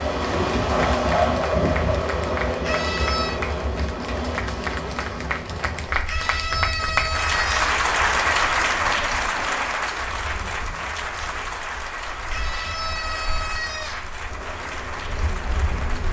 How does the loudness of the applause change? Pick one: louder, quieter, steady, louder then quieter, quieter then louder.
louder then quieter.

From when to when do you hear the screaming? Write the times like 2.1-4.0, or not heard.
2.6-3.4, 6.0-7.7, 12.3-14.1.